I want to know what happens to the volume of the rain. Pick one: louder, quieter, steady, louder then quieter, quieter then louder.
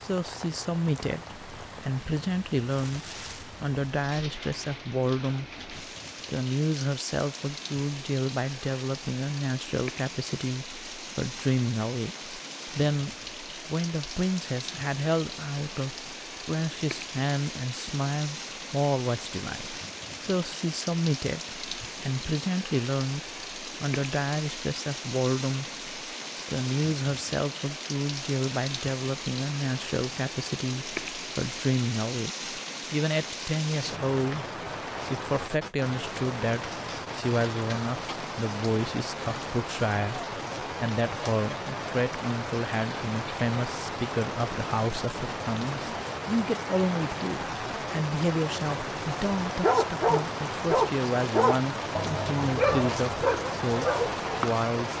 louder.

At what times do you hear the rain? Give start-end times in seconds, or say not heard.
0.0-54.9.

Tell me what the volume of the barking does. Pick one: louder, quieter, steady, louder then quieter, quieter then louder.
quieter then louder.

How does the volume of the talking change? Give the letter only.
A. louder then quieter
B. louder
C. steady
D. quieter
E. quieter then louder
C.